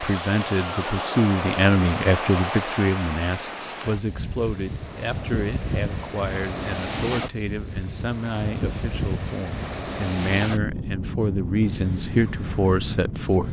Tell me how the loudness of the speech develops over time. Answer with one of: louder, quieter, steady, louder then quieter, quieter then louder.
quieter then louder.